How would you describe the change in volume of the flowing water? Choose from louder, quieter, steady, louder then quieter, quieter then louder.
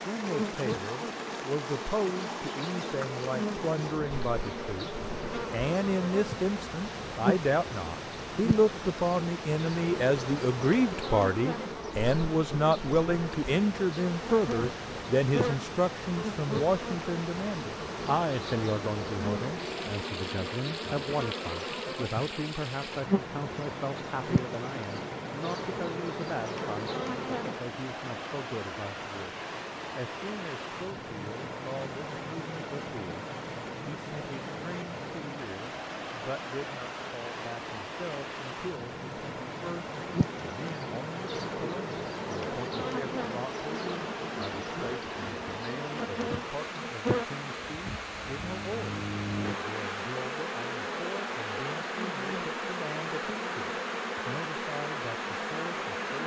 steady.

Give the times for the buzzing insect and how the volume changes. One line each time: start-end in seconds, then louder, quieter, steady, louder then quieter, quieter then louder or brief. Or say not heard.
0.0-27.6 steady
40.0-56.2 steady.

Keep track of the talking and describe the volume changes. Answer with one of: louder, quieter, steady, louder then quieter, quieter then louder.
quieter.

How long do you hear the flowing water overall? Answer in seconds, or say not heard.
56 s.